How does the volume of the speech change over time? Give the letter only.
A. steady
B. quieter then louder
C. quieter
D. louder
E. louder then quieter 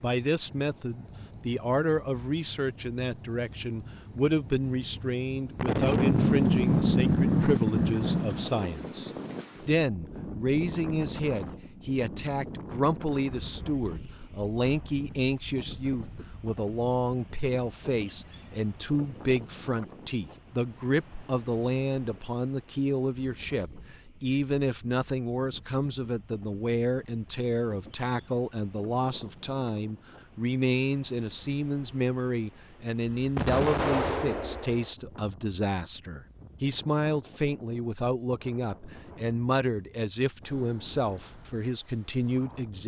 A.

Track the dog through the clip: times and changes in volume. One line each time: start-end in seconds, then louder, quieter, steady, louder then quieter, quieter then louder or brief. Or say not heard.
not heard.